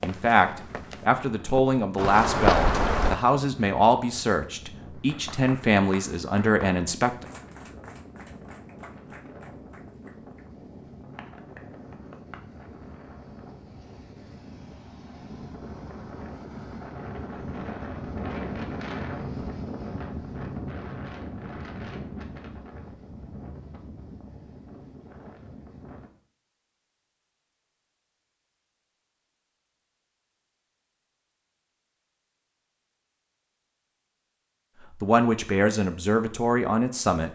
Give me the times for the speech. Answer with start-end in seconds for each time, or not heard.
0.0-7.2, 35.0-37.3.